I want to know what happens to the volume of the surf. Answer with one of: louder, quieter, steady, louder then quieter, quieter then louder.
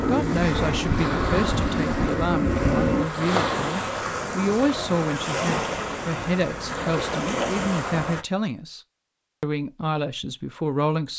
steady.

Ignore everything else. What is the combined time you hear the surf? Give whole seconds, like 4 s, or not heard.
8 s.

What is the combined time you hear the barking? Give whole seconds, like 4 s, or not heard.
not heard.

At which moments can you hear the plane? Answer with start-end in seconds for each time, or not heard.
0.0-3.0.